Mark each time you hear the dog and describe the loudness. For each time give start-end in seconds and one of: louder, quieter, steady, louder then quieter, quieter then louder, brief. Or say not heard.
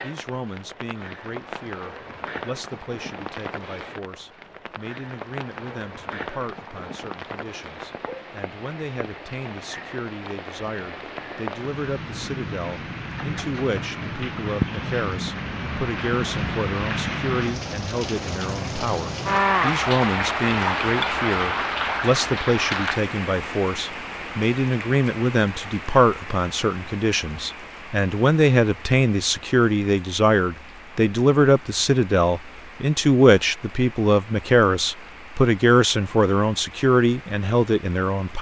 not heard.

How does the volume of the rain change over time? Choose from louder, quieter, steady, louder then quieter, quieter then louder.
louder then quieter.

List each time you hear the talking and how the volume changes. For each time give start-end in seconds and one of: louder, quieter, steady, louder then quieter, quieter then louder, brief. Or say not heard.
0.0-38.3 louder.